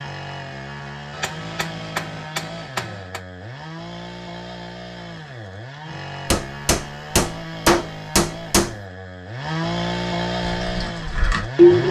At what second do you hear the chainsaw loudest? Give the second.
10 s.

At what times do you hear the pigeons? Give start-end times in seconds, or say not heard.
10.6-11.8.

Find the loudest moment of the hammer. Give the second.
8 s.